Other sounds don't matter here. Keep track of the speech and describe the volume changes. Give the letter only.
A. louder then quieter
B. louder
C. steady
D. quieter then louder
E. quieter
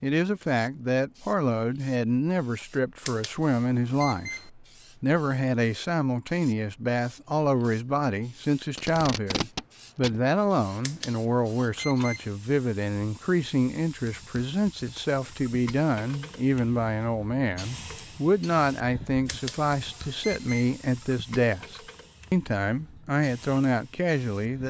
C.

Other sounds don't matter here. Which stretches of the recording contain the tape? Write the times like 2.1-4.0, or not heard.
8.8-10.2.